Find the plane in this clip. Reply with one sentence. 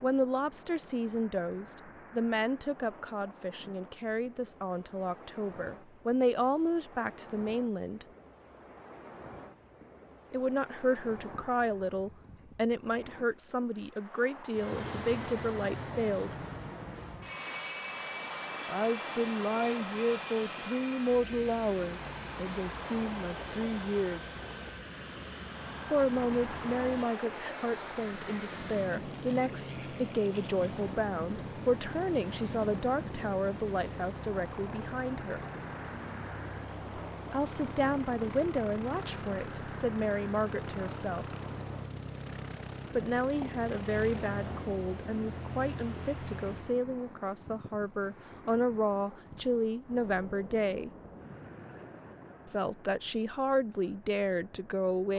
The plane can be heard from 14.5 to 46.8 s.